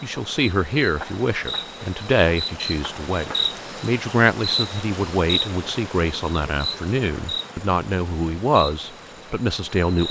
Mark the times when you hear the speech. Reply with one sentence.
You can hear the speech from 0.0 to 10.0 s.